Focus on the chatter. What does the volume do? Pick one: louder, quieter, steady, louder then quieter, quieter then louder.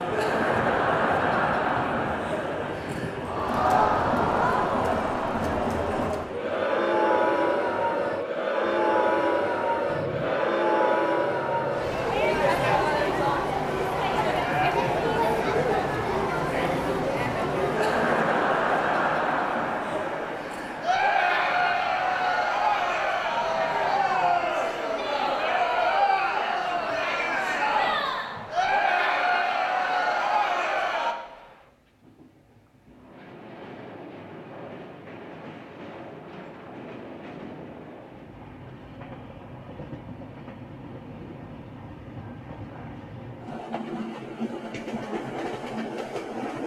steady.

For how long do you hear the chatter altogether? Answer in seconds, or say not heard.
31 s.